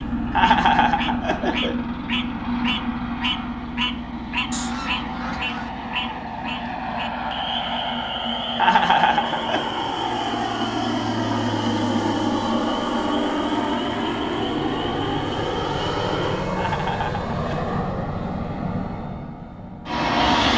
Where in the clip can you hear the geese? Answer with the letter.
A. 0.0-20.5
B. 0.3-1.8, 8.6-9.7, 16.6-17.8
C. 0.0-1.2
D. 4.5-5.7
D.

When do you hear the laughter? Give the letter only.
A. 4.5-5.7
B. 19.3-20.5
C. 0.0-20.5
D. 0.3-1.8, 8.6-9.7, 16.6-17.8
D.